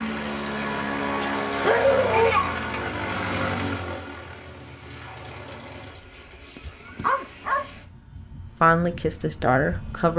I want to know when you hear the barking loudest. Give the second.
2 s.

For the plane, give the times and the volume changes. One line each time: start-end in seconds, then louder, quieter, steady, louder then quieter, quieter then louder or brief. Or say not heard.
0.0-10.1 quieter.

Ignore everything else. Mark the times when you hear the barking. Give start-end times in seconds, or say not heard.
1.2-2.8, 6.5-7.7.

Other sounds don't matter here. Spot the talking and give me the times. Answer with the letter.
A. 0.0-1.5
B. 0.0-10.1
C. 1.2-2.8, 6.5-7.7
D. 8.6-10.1
D.